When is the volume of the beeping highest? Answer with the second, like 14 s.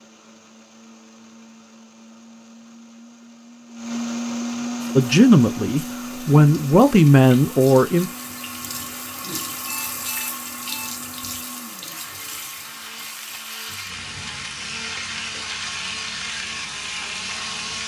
10 s.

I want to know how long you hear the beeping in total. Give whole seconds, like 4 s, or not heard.
2 s.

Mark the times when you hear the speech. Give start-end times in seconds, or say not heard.
5.0-8.1.